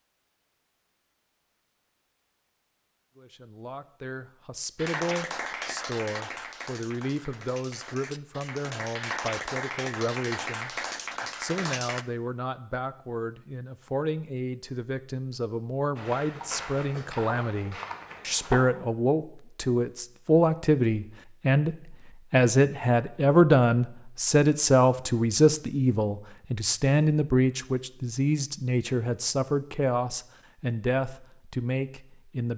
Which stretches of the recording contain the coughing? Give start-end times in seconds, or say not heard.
not heard.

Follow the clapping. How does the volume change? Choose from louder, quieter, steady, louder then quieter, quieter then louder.
quieter then louder.